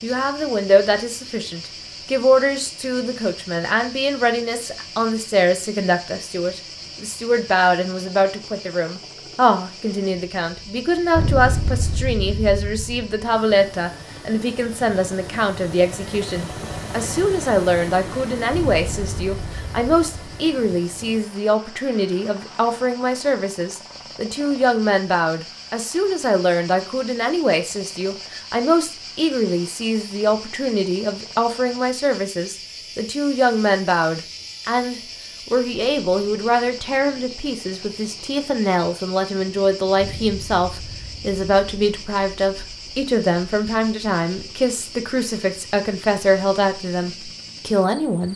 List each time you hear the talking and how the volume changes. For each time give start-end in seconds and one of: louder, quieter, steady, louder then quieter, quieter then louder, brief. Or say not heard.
0.0-48.3 steady.